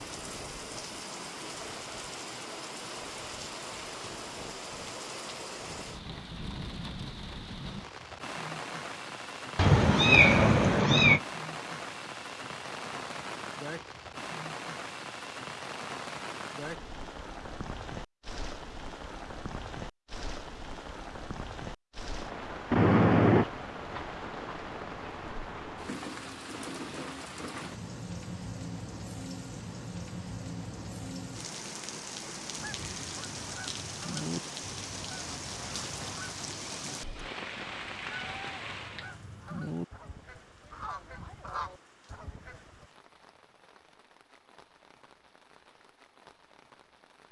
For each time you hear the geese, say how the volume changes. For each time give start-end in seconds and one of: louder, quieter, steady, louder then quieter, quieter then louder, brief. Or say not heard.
32.5-42.9 quieter then louder.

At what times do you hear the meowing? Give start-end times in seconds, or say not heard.
9.6-11.2, 22.7-23.4, 38.0-39.1.